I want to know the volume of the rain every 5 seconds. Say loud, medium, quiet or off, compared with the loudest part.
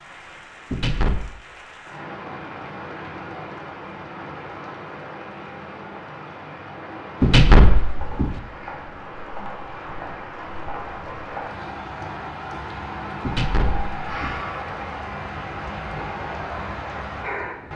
medium, medium, loud, loud.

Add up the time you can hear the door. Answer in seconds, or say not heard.
3 s.